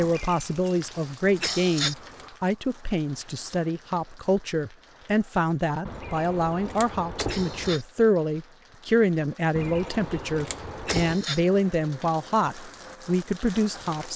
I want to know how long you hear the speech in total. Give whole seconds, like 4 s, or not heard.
14 s.